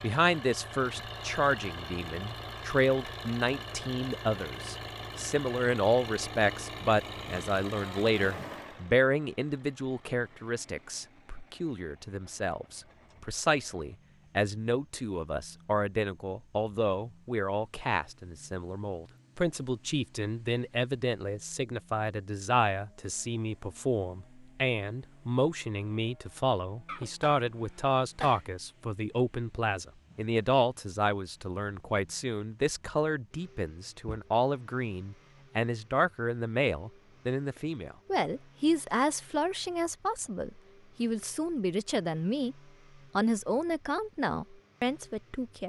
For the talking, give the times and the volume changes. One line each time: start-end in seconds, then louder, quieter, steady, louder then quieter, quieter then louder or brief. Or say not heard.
0.0-42.5 steady
43.1-45.6 brief.